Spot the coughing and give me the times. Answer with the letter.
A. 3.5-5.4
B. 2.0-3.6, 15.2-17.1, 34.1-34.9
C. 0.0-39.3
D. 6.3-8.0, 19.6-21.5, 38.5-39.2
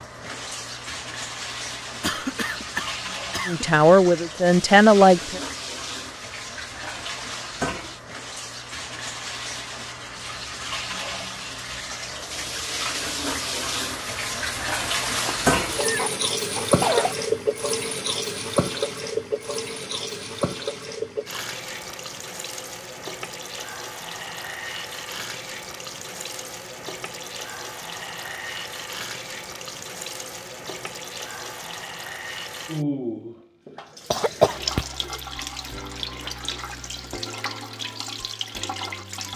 B.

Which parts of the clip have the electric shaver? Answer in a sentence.
The electric shaver can't be heard in this clip.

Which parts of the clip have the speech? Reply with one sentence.
The speech can be heard from 3.5 to 5.4 s.